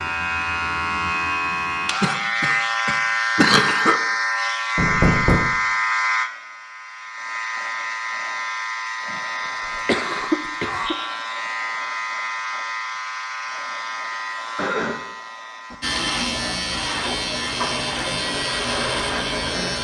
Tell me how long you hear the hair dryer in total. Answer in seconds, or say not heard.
3 s.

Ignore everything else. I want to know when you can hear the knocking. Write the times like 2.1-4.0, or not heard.
4.8-5.5.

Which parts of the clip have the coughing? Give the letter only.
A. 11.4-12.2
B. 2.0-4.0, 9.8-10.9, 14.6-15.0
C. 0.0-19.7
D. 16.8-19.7
B.